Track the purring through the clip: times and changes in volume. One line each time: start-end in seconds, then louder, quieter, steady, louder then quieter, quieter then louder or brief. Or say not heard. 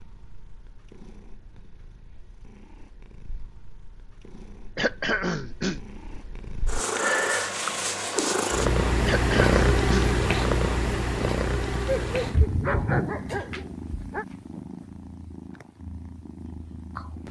0.0-17.2 louder then quieter.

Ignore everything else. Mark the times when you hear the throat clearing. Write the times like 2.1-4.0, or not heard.
4.8-5.8, 9.1-10.2.